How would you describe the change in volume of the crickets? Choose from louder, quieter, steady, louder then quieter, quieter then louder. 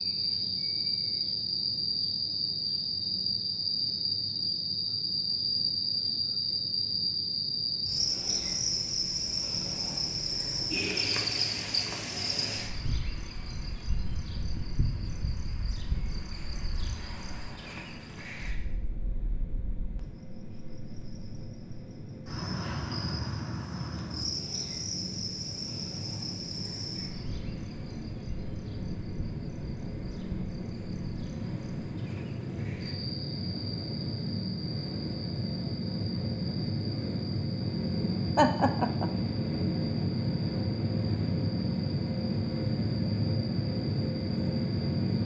quieter.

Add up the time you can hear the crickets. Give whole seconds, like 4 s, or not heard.
45 s.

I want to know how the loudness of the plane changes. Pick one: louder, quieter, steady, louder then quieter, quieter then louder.
louder.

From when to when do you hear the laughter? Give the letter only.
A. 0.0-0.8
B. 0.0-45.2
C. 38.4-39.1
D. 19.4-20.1
C.